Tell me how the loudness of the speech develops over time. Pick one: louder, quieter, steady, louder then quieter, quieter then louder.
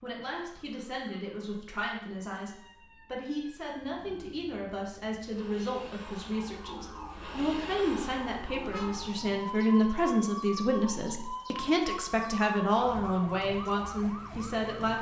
louder.